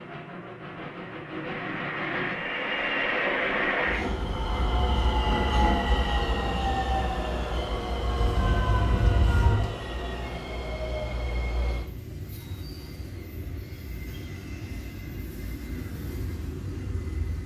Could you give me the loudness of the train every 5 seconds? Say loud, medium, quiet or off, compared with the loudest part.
loud, loud, medium, medium.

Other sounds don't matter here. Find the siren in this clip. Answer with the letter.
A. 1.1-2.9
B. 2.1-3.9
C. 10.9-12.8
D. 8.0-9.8
D.